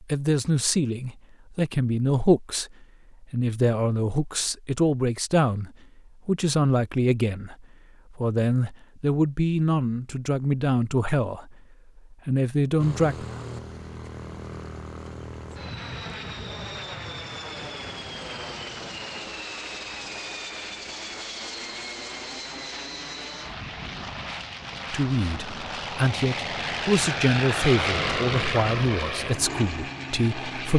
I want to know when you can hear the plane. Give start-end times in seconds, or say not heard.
12.8-30.7.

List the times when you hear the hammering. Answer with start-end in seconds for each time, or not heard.
not heard.